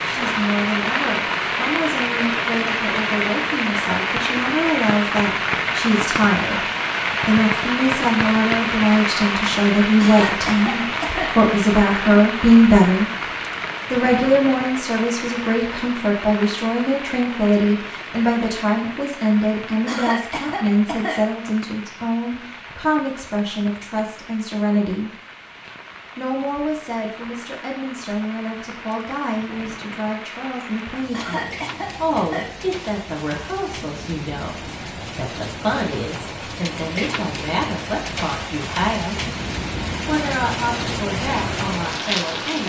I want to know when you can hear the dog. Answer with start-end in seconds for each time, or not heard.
not heard.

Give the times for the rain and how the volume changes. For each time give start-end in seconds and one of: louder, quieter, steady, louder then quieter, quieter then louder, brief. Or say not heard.
0.0-42.6 quieter then louder.